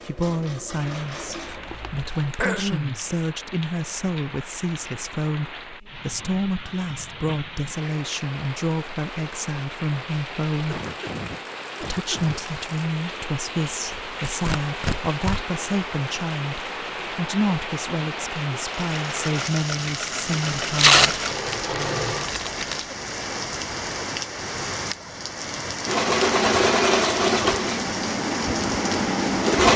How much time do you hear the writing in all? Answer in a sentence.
The writing can't be heard in this clip.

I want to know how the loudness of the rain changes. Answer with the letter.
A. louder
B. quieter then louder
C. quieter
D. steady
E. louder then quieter
A.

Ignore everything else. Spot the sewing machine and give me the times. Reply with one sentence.
The sewing machine can be heard from 0.0 to 2.4 s, from 18.6 to 22.4 s and from 25.9 to 29.7 s.